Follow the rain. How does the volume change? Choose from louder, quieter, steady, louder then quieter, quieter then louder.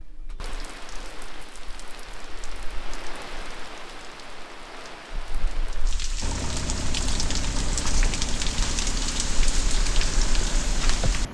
louder.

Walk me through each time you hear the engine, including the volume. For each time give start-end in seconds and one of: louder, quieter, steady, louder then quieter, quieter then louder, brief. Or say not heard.
6.2-11.3 steady.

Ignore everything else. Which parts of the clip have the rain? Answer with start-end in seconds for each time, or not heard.
0.0-11.2.